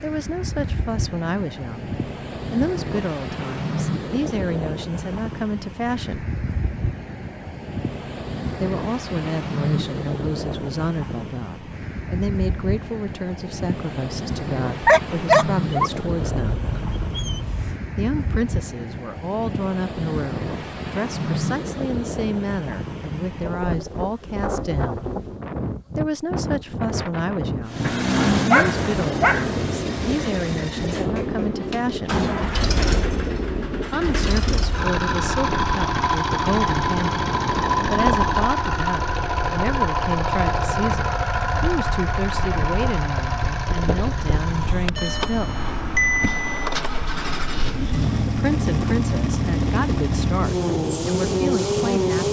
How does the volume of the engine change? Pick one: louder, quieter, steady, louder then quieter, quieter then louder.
steady.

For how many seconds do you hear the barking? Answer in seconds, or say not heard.
5 s.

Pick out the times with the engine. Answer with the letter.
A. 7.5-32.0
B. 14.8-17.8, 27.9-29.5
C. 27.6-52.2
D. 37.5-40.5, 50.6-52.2
C.